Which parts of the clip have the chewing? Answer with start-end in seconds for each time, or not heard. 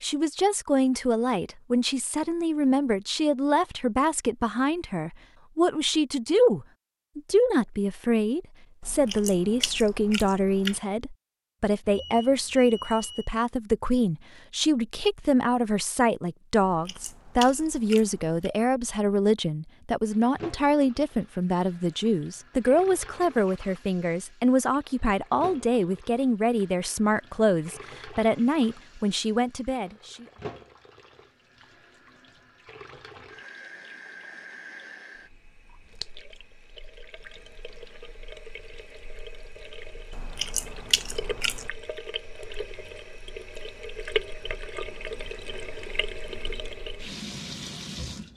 8.8-10.8, 16.6-18.5, 40.1-41.7.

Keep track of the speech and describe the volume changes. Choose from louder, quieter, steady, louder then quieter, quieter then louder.
steady.